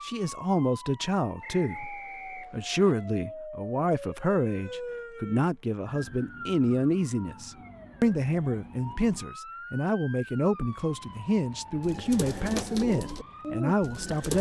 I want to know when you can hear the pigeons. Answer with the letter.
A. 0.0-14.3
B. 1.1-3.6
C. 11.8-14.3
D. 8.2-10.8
C.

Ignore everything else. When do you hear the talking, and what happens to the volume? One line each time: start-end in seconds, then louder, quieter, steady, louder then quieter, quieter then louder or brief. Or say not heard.
0.0-14.3 steady.